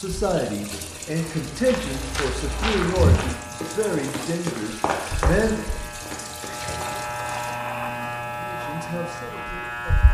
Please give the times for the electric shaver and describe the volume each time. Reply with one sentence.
The electric shaver can be heard from 0.0 to 10.0 s, getting louder.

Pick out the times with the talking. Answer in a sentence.
The talking can be heard from 0.0 to 5.5 s and from 8.3 to 10.0 s.